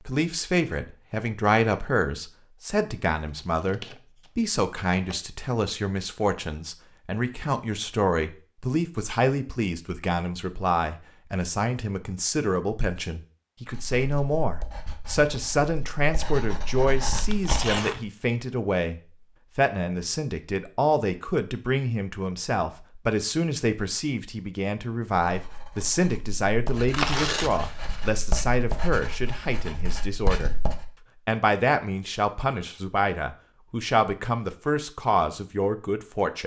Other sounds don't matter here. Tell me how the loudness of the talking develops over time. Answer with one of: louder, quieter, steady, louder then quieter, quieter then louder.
steady.